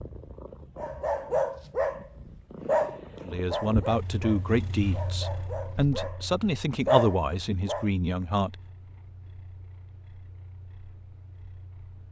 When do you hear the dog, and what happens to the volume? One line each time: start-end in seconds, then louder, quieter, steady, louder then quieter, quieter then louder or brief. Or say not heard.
0.8-7.8 quieter then louder.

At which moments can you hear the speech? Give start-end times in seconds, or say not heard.
3.2-8.6.